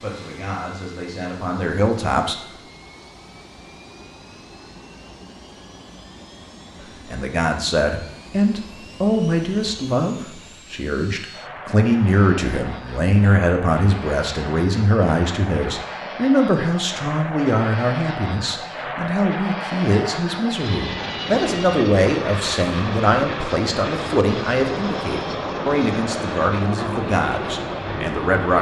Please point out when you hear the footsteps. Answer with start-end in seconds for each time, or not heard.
not heard.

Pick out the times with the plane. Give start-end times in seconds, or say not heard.
0.0-28.5.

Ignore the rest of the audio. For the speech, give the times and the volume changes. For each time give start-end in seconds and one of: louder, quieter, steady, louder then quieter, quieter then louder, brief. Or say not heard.
0.0-2.4 brief
7.0-28.5 steady.